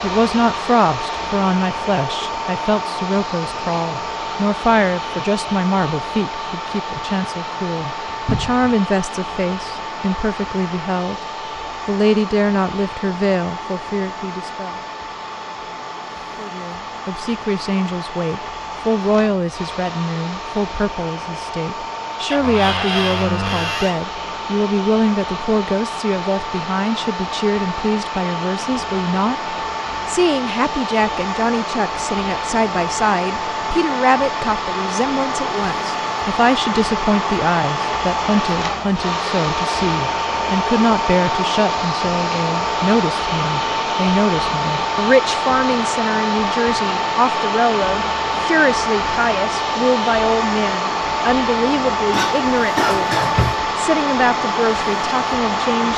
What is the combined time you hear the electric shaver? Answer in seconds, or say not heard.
not heard.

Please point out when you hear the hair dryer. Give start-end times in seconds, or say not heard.
0.0-55.9.